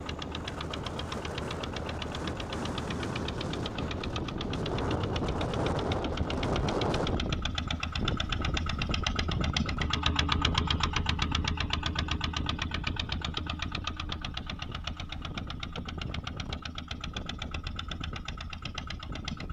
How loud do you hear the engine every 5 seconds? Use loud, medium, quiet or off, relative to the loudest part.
medium, loud, loud, medium.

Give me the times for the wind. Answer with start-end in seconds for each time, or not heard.
0.0-19.4.